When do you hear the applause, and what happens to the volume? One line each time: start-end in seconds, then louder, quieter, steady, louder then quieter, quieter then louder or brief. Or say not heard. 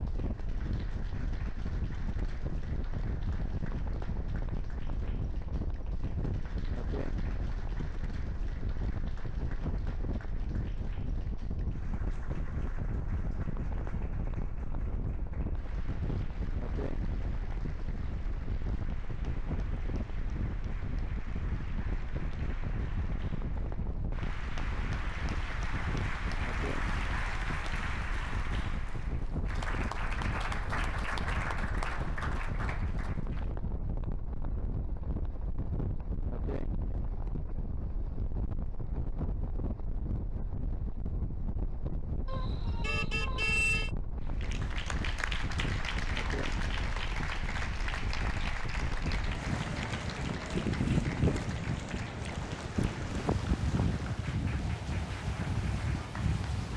0.0-33.5 louder
44.2-56.5 quieter.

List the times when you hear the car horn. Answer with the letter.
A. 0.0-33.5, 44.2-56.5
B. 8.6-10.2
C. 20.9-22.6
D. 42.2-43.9
D.